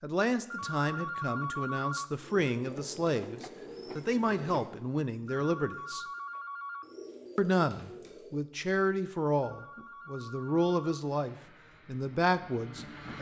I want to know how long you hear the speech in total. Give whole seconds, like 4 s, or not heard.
12 s.